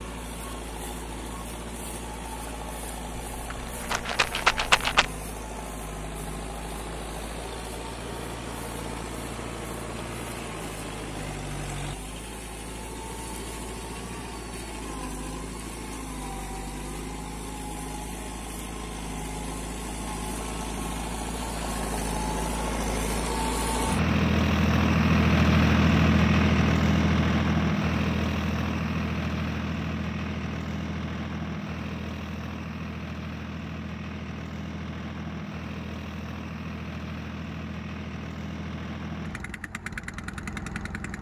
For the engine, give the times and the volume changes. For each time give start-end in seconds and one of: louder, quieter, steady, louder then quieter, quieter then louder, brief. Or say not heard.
0.0-41.1 louder then quieter.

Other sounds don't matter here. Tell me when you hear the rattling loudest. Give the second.
5 s.